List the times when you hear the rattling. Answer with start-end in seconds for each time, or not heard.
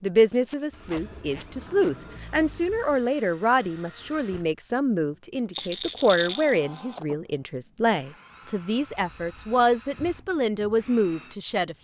5.5-7.0.